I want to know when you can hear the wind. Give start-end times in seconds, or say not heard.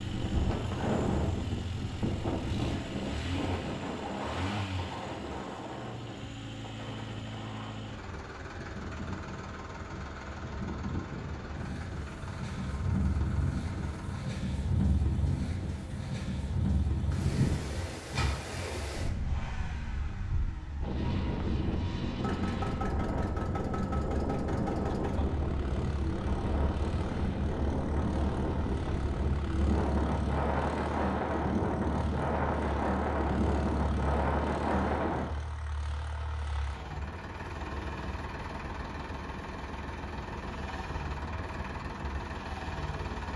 0.0-35.4.